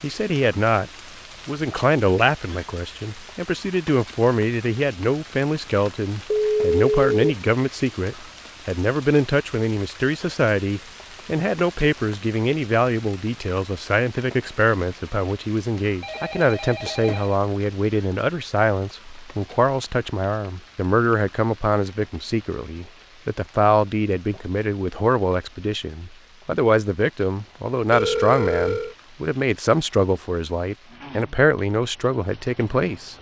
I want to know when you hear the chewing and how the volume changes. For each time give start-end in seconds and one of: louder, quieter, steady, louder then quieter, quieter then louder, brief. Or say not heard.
not heard.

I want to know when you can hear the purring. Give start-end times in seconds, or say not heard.
not heard.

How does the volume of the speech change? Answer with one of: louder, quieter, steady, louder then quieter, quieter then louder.
steady.